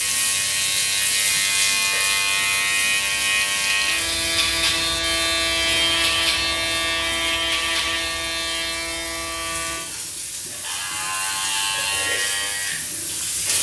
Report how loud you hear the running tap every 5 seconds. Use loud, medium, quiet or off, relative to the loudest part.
loud, medium, loud.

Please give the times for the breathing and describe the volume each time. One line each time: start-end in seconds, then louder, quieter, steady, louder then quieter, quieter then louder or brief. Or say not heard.
not heard.